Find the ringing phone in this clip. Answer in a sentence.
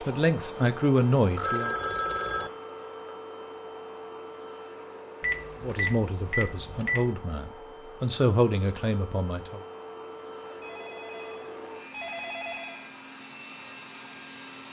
The ringing phone can be heard from 1.4 to 2.5 s, from 5.2 to 7.2 s and from 10.4 to 12.8 s.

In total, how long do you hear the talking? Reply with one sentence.
You can hear the talking for 6 seconds altogether.